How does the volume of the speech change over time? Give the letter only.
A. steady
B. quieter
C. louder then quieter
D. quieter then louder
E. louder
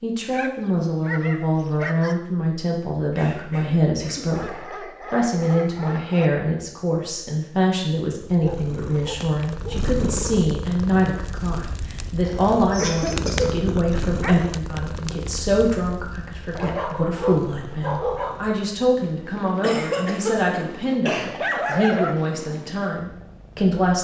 A.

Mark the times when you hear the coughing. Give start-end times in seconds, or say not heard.
3.1-4.3, 12.2-13.5, 19.6-21.4.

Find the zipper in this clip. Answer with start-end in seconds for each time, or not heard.
not heard.